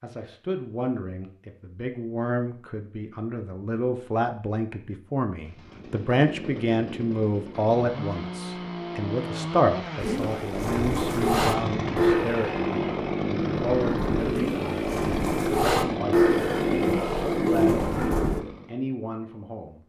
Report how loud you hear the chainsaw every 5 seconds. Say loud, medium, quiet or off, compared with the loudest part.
off, medium, loud, loud.